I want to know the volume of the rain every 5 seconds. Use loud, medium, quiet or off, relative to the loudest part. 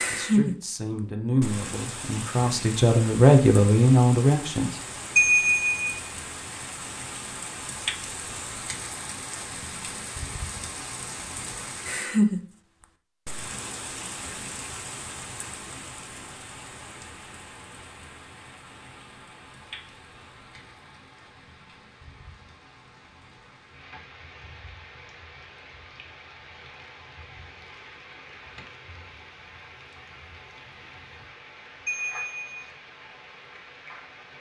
loud, medium, loud, quiet, quiet, quiet, quiet.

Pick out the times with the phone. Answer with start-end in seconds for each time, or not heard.
5.2-6.0, 31.9-32.7.